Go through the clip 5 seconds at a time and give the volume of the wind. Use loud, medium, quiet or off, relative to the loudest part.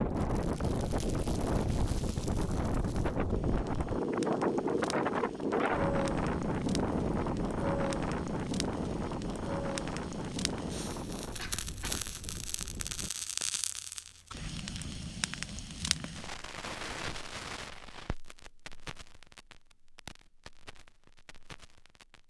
loud, loud, medium, off, off.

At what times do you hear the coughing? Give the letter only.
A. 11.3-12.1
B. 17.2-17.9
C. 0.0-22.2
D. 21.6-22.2
A.